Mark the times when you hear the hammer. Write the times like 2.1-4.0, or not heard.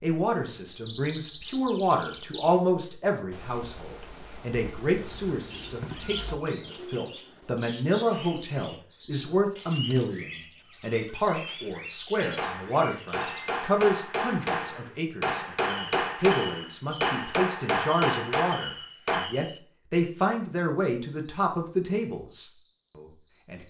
12.2-19.2.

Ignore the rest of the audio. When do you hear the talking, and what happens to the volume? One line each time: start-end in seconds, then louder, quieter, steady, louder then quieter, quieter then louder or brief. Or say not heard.
0.0-23.6 steady.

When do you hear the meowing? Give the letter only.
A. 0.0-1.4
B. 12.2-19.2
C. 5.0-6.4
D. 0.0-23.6
C.